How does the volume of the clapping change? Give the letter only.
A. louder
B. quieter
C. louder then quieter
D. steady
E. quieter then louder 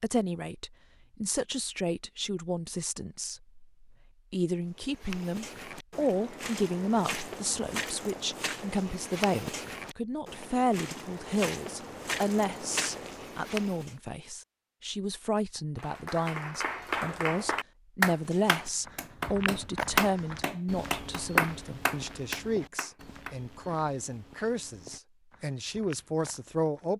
C.